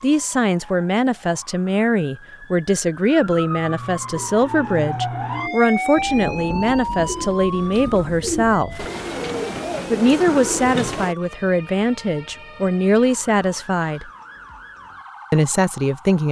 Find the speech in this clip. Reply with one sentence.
You can hear the speech from 0.0 to 8.8 s, from 9.9 to 14.1 s and from 15.3 to 16.2 s.